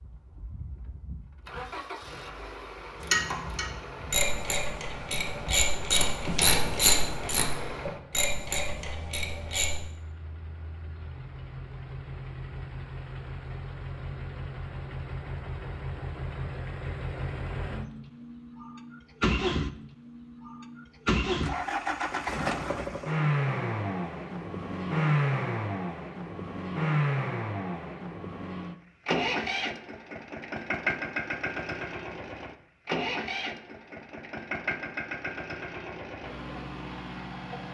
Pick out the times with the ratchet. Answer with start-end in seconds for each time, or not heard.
3.0-9.8.